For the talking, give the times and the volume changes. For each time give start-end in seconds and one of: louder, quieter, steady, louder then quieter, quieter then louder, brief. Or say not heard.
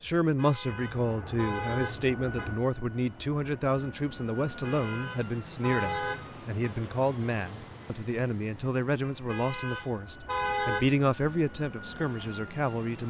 0.0-13.0 steady.